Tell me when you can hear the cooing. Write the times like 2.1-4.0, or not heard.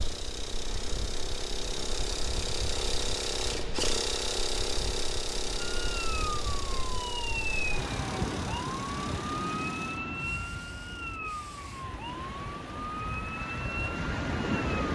not heard.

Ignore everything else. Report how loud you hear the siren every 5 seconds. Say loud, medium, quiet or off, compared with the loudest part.
off, loud, loud.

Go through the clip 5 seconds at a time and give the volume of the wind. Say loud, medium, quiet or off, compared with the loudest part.
medium, loud, loud.